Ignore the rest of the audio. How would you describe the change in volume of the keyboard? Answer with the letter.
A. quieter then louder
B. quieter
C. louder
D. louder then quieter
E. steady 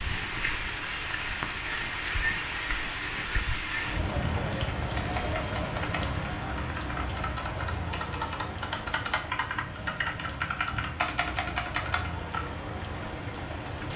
C.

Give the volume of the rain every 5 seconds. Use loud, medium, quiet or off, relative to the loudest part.
loud, loud, medium.